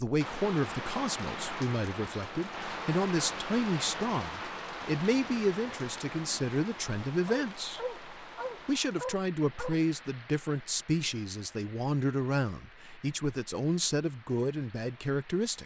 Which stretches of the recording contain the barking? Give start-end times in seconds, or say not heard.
7.2-9.8.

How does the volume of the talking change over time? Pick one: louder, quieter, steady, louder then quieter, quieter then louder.
steady.